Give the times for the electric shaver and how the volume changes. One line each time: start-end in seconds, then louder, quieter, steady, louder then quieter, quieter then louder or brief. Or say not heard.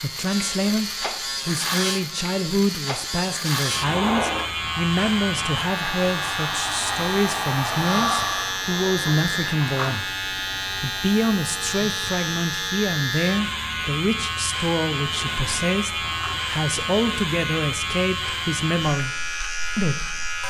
0.0-20.4 steady.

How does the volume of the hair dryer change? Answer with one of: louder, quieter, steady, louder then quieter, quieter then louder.
louder.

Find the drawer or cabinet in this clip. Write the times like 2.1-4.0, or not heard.
3.9-4.5, 8.5-9.9, 15.1-16.4.